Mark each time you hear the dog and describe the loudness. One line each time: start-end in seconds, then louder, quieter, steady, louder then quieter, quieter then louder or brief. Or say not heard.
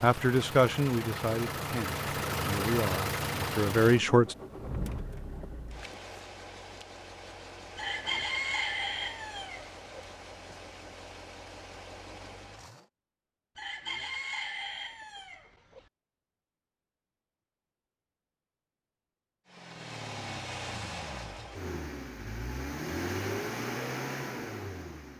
not heard.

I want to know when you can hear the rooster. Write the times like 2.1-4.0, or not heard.
7.8-10.1, 13.6-15.8.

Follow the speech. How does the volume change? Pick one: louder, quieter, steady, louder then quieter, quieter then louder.
quieter then louder.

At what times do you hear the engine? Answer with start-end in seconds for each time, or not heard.
0.0-12.9, 19.4-25.1.